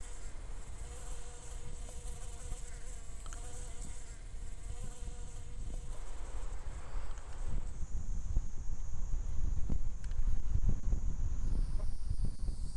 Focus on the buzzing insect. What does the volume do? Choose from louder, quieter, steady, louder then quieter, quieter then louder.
quieter.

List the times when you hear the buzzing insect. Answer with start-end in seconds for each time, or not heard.
0.0-12.7.